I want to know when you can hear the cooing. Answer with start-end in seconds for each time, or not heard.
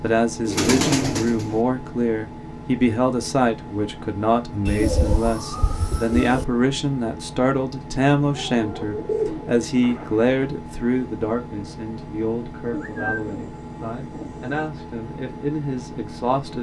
0.5-1.6, 4.7-6.5, 8.3-10.2, 12.7-14.7.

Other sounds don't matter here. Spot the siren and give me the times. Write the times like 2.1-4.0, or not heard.
not heard.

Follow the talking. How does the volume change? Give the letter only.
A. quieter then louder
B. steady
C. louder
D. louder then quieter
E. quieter
E.